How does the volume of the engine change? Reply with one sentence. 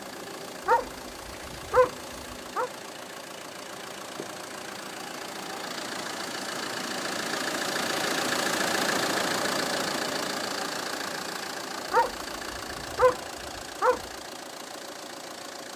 The volume of the engine goes up, then down.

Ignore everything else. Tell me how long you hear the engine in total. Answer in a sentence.
The engine can be heard for 16 seconds in total.